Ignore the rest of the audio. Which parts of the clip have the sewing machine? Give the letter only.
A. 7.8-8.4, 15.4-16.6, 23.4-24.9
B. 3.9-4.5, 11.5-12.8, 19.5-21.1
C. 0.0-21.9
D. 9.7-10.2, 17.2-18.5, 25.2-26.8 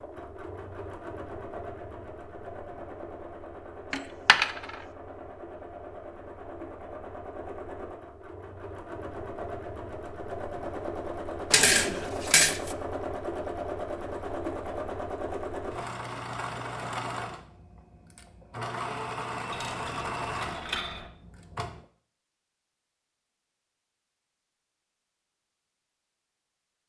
C.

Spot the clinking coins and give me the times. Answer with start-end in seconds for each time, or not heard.
3.9-4.5, 11.5-12.8, 19.5-21.1.